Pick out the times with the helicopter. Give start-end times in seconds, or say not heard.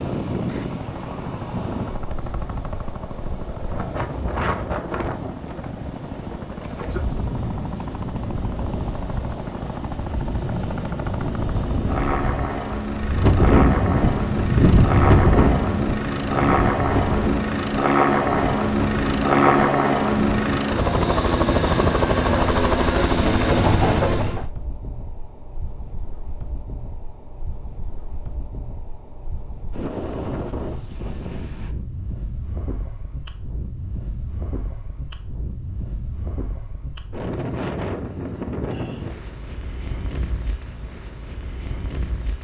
0.0-24.5.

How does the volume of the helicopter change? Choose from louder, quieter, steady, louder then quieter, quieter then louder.
louder.